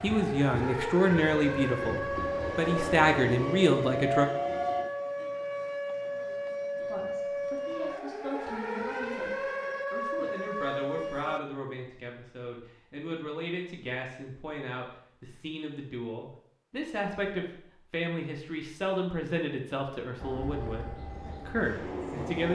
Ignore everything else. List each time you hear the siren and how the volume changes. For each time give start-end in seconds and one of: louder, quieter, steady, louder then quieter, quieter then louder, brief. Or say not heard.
0.0-11.4 steady.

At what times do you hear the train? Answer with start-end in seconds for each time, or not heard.
0.0-4.8, 20.2-22.5.